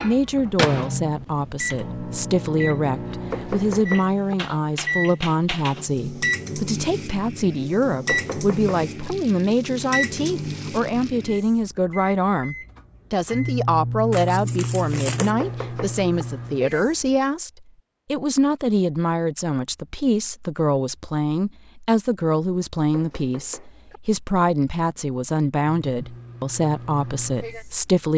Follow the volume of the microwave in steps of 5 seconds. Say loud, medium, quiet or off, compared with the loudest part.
loud, loud, loud, loud, off, medium.